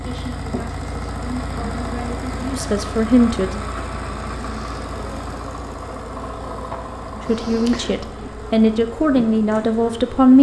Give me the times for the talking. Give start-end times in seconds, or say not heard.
0.0-3.5, 7.2-10.3.